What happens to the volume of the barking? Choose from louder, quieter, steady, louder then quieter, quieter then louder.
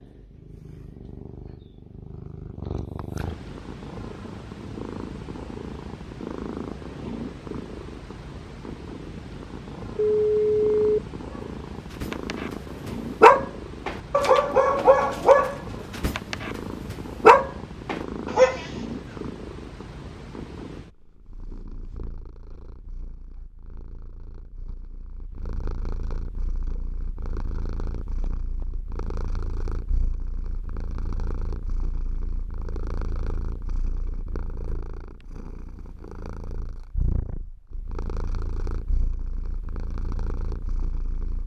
quieter then louder.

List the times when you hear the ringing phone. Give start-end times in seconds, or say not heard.
9.9-11.0.